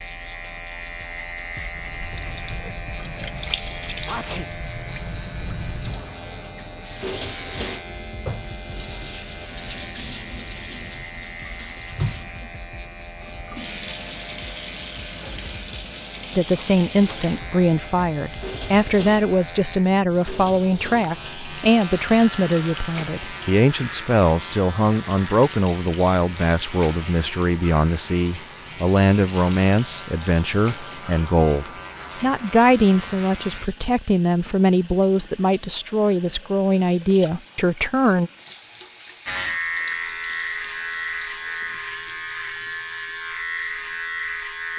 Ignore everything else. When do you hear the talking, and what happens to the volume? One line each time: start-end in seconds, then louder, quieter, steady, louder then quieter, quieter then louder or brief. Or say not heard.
16.4-38.3 steady.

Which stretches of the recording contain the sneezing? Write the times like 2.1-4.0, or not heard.
4.0-4.5.